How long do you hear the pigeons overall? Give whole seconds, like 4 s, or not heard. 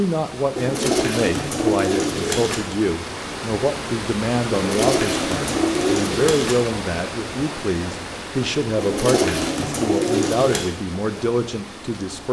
6 s.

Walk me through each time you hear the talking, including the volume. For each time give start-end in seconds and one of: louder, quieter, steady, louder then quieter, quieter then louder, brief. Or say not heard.
0.0-12.2 steady.